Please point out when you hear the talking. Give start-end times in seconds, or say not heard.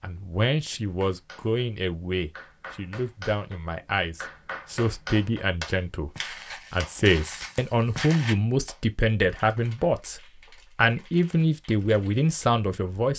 0.0-13.1.